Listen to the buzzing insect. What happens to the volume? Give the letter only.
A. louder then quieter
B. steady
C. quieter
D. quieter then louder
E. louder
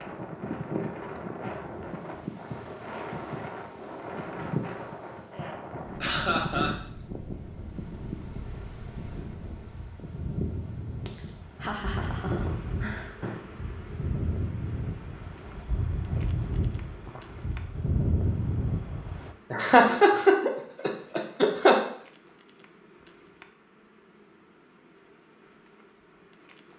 C.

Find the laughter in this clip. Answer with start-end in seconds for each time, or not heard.
6.0-6.8, 11.1-13.4, 19.5-21.8.